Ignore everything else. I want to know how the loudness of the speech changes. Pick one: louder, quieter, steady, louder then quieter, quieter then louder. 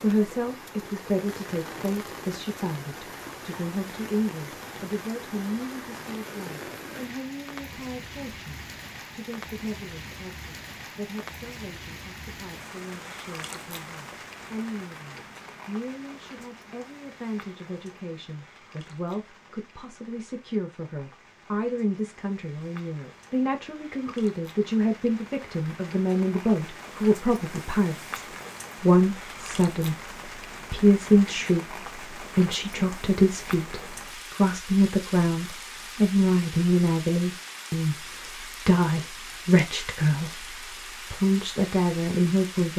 quieter then louder.